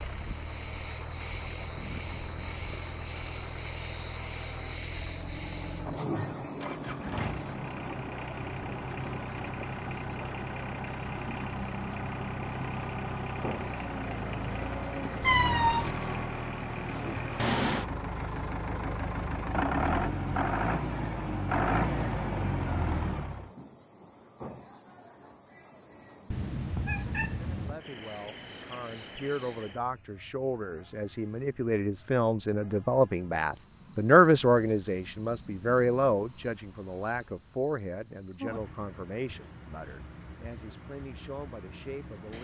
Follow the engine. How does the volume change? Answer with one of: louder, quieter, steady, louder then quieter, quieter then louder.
louder.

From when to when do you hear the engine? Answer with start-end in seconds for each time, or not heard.
0.0-23.5.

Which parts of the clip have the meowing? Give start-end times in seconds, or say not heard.
15.2-15.9, 26.3-27.8.